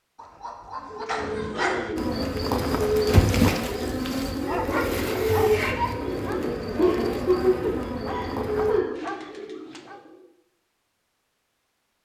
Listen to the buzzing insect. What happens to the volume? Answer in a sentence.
The volume of the buzzing insect goes down.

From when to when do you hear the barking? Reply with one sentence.
The barking can be heard from 0.1 to 1.9 s, from 4.5 to 6.5 s and from 8.1 to 10.0 s.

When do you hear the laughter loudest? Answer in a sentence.
The volume of the laughter peaks at 7 seconds.